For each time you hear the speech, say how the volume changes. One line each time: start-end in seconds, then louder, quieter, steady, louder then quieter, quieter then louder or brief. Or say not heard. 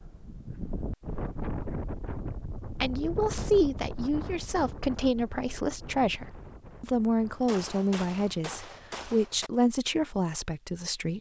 2.8-11.1 steady.